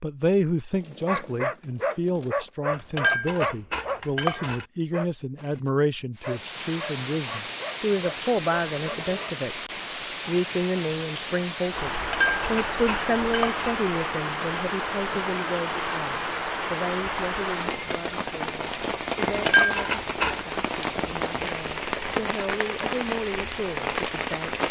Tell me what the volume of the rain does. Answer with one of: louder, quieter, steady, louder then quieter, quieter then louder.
steady.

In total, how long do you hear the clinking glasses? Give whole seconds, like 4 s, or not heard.
5 s.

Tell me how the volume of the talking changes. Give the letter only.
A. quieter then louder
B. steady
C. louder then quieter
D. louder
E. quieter
E.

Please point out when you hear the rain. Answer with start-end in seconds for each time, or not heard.
6.2-24.6.